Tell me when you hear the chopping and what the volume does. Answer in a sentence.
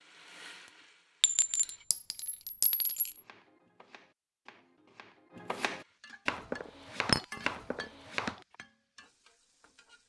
The chopping can be heard from 3.1 to 8.4 s, getting louder.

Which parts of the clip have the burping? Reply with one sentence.
The burping can't be heard in this clip.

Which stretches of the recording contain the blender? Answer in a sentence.
The blender can't be heard in this clip.